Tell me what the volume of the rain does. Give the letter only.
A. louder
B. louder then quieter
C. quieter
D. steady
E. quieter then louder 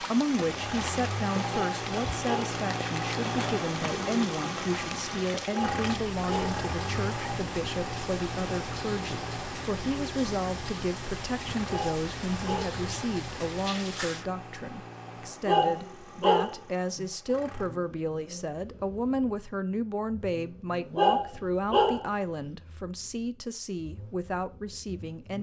D.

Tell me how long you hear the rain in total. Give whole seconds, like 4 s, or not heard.
14 s.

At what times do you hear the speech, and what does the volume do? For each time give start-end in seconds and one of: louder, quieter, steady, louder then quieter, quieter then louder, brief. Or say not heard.
0.0-25.3 steady.